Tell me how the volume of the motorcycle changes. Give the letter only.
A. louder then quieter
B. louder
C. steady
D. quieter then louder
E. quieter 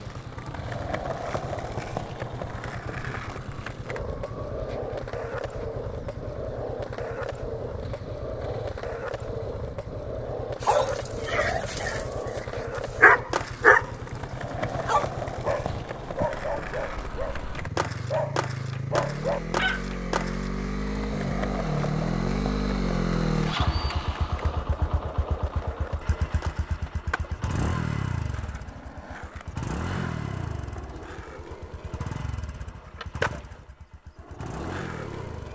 A.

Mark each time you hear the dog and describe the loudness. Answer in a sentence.
The dog can be heard from 10.6 to 17.5 s, getting louder then quieter; and briefly from 18.1 to 19.8 s.